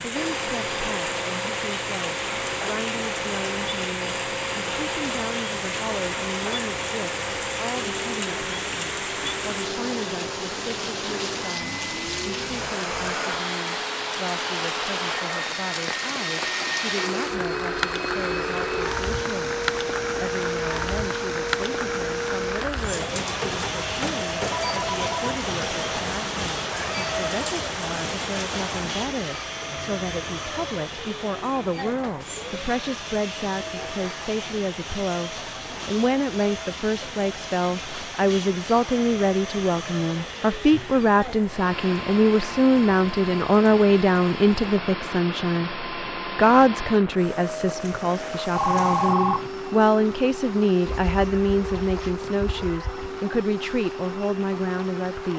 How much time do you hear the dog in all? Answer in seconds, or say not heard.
not heard.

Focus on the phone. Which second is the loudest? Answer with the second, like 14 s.
49 s.